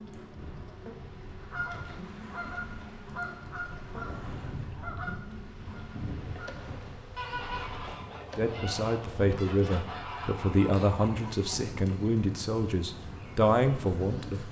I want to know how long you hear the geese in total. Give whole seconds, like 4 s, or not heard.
10 s.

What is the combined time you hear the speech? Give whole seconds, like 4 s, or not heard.
6 s.